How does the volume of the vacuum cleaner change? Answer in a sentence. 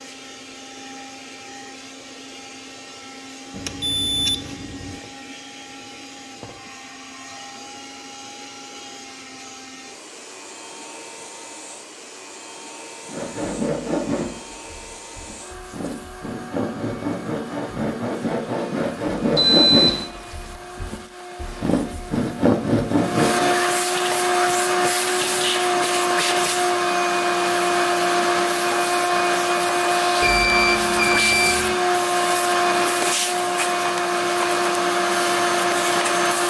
The volume of the vacuum cleaner goes up.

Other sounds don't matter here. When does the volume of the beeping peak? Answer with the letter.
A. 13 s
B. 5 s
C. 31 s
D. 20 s
D.